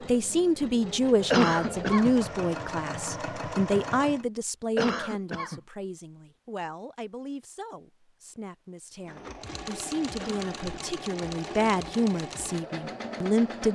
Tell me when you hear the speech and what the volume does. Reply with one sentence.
You can hear the speech from 0.0 to 13.7 s, getting quieter then louder.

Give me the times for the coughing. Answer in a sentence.
The coughing can be heard from 1.3 to 2.1 s, from 4.8 to 5.6 s and from 10.2 to 11.0 s.